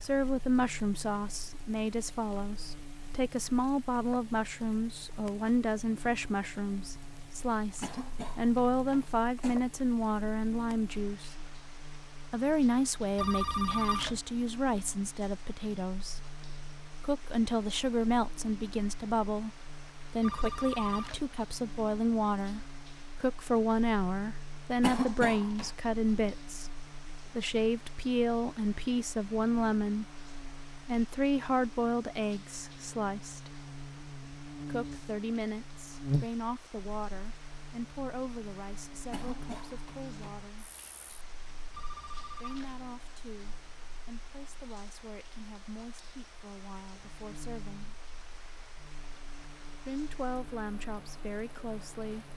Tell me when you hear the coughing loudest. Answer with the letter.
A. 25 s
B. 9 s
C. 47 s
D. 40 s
A.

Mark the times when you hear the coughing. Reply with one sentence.
You can hear the coughing from 7.8 to 9.6 s, from 24.8 to 25.7 s and from 39.1 to 40.4 s.